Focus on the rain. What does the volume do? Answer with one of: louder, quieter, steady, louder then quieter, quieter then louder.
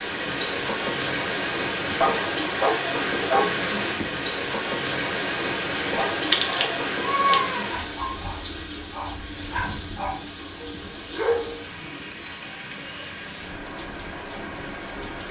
quieter.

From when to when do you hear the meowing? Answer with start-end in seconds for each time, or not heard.
6.3-7.8.